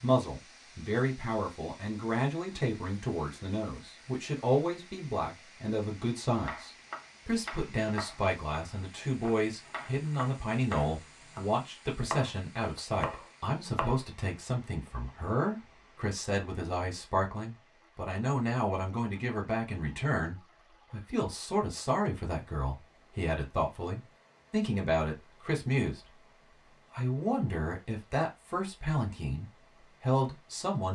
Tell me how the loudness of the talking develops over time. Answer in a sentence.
The loudness of the talking stays about the same.